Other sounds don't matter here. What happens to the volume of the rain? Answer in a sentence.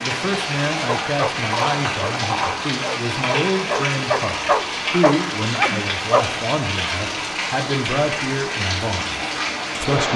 The loudness of the rain stays about the same.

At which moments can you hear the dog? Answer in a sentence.
You can hear the dog from 0.8 to 6.2 s.